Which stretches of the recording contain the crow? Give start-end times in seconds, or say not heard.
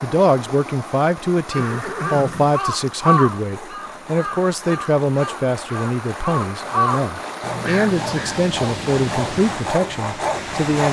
1.5-8.4.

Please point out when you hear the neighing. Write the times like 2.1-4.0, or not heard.
1.6-2.6.